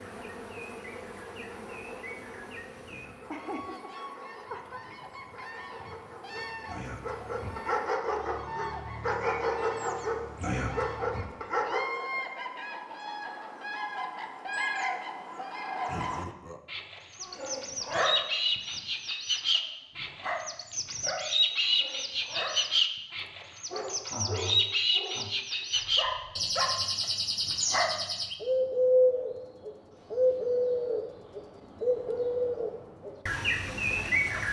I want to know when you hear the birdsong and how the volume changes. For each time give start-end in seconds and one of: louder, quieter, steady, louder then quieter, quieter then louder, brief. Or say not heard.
0.0-34.4 louder.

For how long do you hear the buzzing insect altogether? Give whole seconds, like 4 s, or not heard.
8 s.